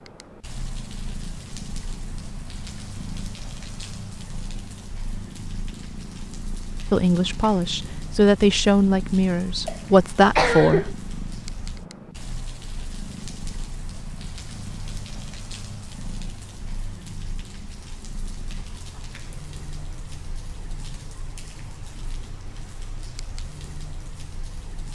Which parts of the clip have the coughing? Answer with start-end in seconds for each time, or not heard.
9.7-10.9.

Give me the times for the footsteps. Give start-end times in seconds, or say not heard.
not heard.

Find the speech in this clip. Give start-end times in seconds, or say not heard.
6.9-11.0.